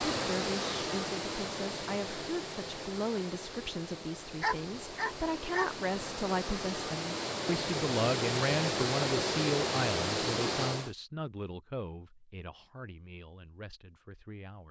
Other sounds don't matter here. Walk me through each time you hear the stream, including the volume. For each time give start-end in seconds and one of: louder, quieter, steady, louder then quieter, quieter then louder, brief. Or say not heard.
0.0-10.9 quieter then louder.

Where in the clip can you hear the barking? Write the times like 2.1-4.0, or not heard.
4.4-5.7.